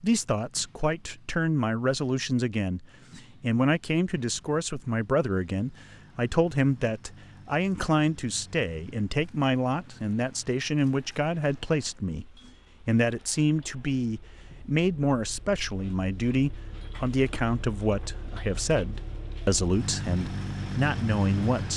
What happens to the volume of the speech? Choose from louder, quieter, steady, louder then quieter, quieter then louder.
steady.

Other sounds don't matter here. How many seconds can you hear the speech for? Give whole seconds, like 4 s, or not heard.
22 s.